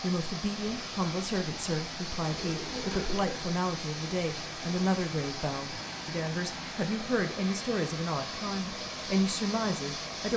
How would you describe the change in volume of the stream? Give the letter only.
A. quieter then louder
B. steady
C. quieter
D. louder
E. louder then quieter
B.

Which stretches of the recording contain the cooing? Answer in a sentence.
You can hear the cooing from 2.2 to 3.5 s.